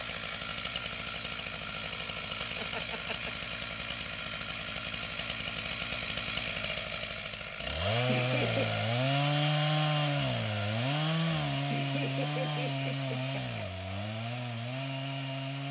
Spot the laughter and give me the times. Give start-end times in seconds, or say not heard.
2.5-3.5, 8.1-8.8, 11.7-13.6.